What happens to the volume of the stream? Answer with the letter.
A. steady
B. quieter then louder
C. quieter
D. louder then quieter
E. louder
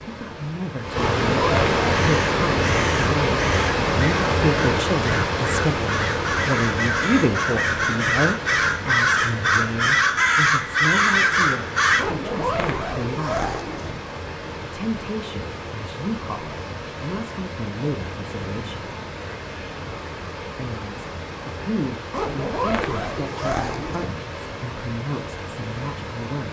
C.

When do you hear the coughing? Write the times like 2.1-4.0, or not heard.
not heard.